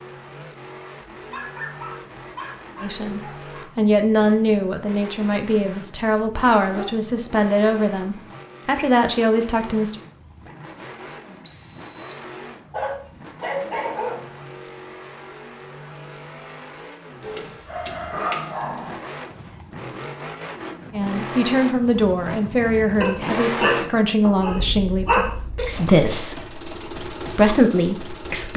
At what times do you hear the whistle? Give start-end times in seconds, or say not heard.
11.4-12.2.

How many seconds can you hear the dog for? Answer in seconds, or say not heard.
9 s.